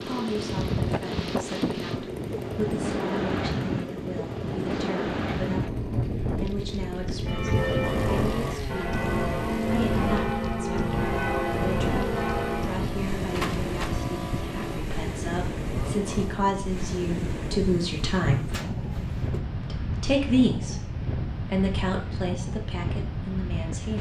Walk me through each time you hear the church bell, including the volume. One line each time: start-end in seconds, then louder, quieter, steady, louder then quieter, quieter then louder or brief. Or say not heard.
7.2-12.8 steady.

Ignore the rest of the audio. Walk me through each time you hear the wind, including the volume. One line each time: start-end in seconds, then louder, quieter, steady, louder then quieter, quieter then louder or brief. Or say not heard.
0.0-23.9 steady.